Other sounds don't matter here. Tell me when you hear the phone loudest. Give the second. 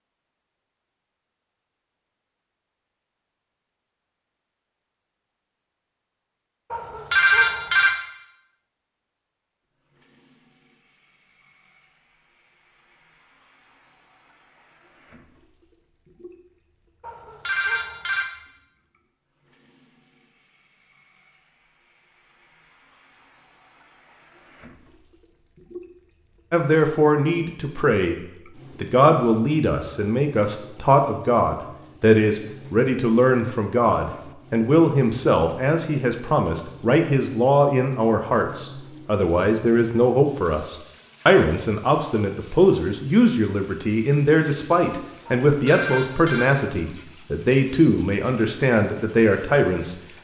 7 s.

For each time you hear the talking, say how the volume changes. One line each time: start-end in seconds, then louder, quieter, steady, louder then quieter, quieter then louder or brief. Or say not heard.
26.5-28.2 brief
28.8-50.0 steady.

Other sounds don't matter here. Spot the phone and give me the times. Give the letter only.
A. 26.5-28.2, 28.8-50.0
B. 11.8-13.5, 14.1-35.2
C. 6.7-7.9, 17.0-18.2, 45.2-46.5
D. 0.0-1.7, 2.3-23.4
C.